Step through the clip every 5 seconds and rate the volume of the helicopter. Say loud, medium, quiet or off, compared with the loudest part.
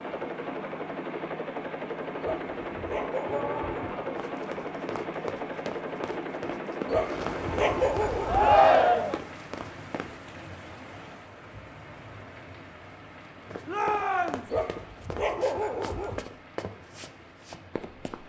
loud, loud, off, off.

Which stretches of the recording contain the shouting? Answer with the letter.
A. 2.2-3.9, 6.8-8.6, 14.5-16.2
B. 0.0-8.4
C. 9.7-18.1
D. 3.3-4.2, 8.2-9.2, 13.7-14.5
D.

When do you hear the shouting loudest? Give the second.
9 s.